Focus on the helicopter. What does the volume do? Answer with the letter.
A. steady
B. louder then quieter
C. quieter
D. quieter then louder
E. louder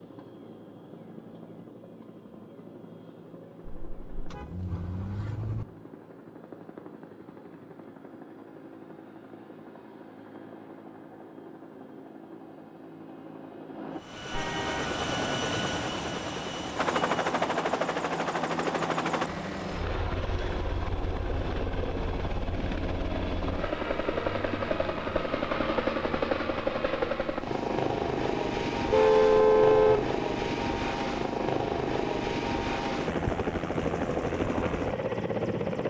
E.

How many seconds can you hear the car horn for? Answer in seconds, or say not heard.
4 s.